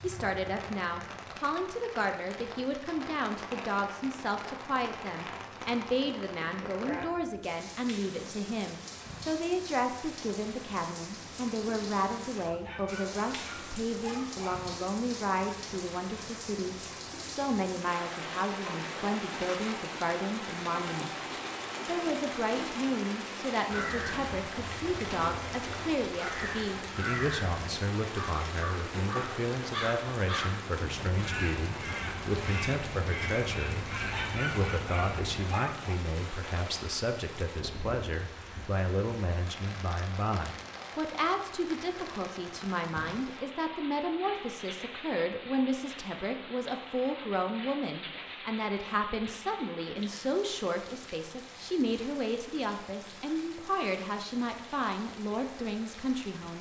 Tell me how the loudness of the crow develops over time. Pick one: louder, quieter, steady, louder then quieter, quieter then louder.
louder.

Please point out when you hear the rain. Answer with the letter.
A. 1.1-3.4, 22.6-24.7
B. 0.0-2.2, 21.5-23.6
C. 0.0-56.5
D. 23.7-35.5
C.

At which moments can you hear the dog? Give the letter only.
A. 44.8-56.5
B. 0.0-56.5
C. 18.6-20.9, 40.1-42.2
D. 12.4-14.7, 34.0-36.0
D.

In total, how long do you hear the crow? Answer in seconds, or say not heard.
12 s.